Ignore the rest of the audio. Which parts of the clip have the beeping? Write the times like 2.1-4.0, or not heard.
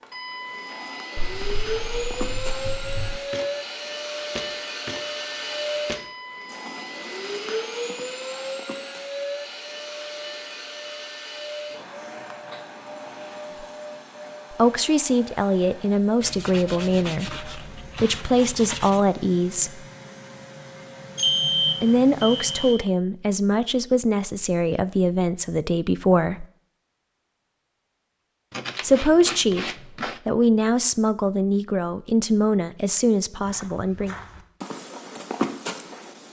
21.1-22.8.